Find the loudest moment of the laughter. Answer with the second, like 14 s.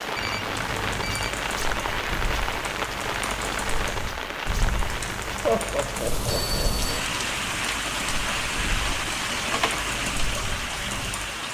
6 s.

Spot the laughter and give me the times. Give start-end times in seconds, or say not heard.
5.4-7.0.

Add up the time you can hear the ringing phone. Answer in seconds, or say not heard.
2 s.